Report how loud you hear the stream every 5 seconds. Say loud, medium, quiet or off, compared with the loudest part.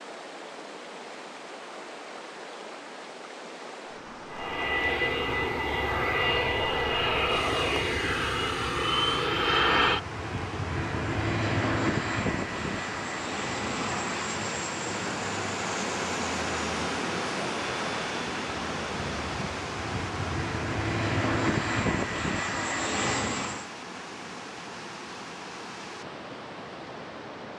medium, medium, medium, loud, medium, medium.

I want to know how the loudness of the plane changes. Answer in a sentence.
The volume of the plane goes down, then up.